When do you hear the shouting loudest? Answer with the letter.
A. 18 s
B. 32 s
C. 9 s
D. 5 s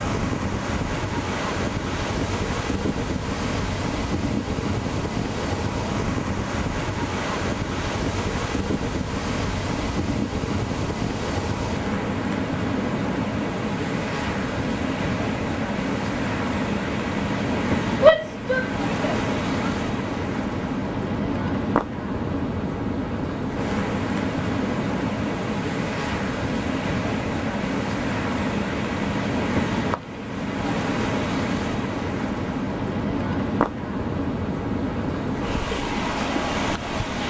A.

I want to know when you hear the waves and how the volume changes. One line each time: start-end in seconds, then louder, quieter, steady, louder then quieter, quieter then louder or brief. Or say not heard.
0.0-37.2 steady.